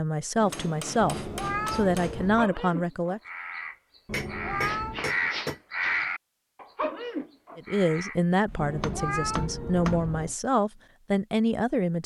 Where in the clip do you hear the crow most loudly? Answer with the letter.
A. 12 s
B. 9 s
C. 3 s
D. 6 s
D.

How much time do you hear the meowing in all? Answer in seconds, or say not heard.
4 s.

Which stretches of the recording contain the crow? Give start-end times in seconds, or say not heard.
2.2-8.2.